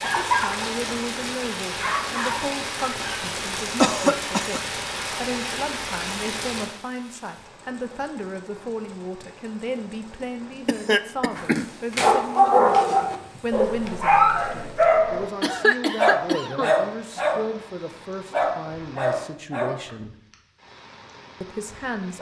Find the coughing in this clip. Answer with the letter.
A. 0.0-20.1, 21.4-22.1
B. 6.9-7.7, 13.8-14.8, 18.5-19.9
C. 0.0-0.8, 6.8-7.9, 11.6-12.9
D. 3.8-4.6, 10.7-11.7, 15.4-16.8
D.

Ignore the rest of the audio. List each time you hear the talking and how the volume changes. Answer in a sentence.
The talking can be heard from 0.0 to 20.1 s, at a steady volume; and briefly from 21.4 to 22.1 s.